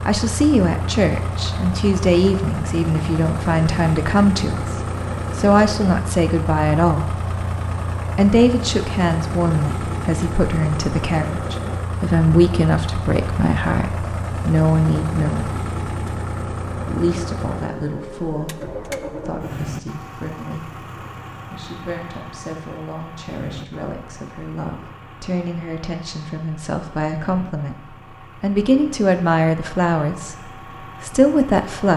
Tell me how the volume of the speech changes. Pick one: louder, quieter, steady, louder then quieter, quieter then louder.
quieter then louder.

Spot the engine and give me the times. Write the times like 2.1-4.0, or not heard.
0.0-31.9.